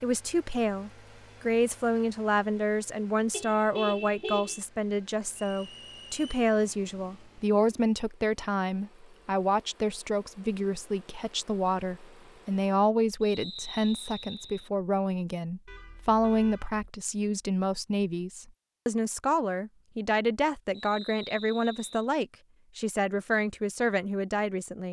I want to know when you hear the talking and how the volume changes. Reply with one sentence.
You can hear the talking from 0.0 to 24.8 s, at a steady volume.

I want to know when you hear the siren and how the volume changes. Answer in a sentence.
The siren can't be heard in this clip.